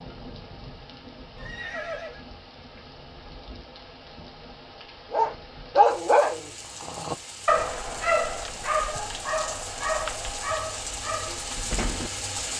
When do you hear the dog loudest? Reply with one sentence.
The loudest moment of the dog is at 6 seconds.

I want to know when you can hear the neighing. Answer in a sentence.
The neighing can be heard from 1.4 to 2.2 s.